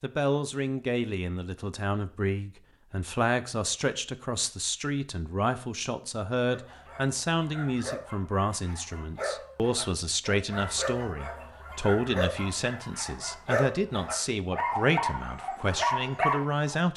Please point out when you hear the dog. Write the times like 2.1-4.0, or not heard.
6.5-16.8.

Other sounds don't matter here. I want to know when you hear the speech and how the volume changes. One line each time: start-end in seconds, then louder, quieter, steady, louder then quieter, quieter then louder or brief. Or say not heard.
0.0-16.9 steady.